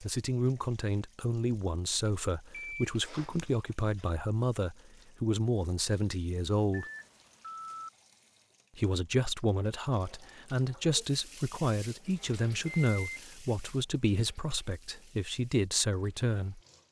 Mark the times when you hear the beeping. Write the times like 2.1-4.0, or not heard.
2.5-3.4, 6.7-7.9, 12.7-13.2.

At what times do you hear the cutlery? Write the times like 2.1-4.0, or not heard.
not heard.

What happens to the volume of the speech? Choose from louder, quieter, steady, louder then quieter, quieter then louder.
steady.